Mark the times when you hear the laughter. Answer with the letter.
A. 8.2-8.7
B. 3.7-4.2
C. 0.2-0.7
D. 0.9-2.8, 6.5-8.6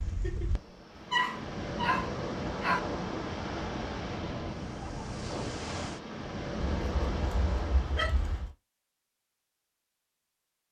C.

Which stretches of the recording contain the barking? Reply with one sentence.
You can hear the barking from 0.9 to 2.8 s and from 6.5 to 8.6 s.